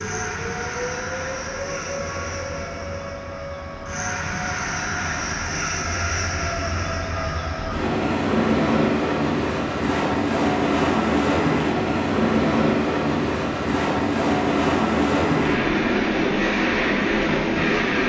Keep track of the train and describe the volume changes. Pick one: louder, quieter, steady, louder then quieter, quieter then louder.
louder.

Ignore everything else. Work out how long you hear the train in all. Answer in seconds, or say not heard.
18 s.